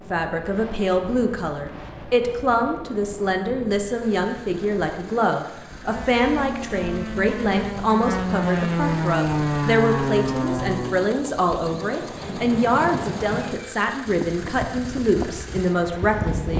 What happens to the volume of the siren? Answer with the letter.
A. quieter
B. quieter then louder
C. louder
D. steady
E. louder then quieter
C.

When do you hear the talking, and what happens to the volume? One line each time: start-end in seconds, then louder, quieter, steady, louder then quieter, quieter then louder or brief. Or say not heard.
0.1-16.5 steady.